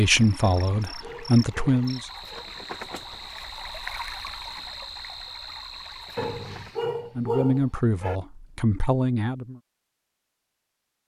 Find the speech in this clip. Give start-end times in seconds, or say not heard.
0.0-2.0, 7.2-9.6.